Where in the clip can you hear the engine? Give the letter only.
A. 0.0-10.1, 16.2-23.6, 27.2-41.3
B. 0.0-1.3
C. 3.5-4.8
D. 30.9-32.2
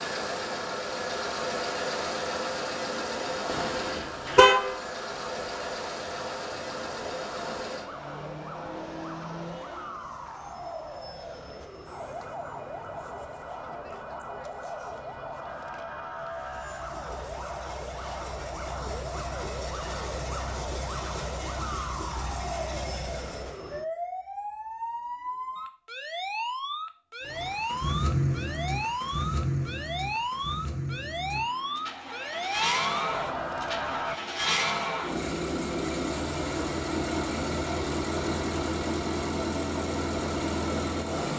A.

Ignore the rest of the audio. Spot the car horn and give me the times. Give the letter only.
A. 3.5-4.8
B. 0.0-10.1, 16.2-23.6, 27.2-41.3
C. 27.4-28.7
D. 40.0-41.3
A.